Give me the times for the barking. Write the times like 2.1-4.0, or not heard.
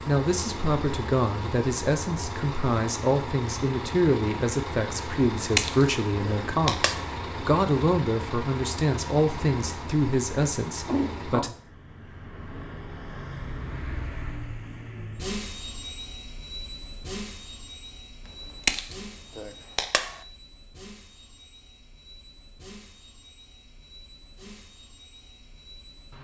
not heard.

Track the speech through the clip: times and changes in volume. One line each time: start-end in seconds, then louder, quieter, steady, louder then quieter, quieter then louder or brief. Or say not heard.
0.1-11.6 steady.